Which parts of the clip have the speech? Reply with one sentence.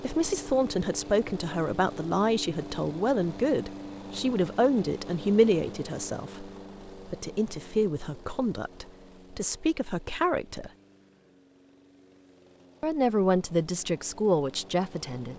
The speech can be heard from 0.0 to 10.7 s and from 12.8 to 15.3 s.